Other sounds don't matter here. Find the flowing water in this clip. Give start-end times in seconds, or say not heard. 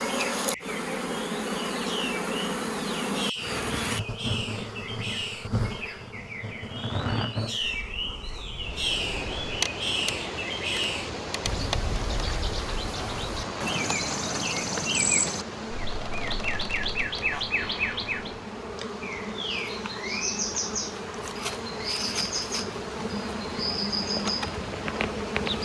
8.5-25.6.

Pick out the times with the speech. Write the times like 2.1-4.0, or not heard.
not heard.